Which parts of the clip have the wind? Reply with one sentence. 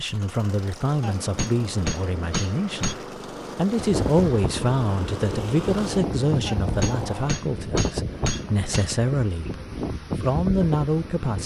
The wind can be heard from 3.8 to 11.4 s.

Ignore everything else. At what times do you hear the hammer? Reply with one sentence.
The hammer can be heard from 1.0 to 3.0 s and from 6.5 to 8.9 s.